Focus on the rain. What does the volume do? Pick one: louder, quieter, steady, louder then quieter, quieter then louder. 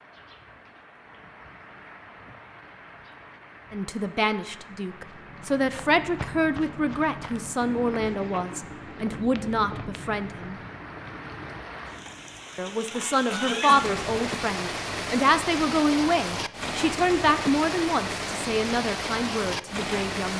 louder.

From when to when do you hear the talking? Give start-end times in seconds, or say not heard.
3.7-10.6, 12.6-20.3.